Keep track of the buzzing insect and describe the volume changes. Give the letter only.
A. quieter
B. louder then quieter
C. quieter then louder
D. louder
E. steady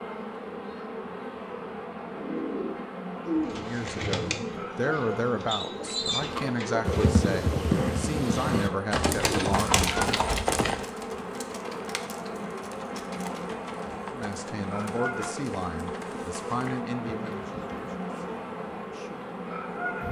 E.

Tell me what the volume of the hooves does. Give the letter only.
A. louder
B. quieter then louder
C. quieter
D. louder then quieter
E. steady
C.